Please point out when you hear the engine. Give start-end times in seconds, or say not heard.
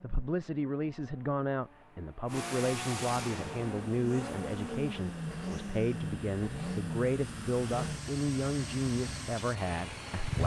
0.0-10.4.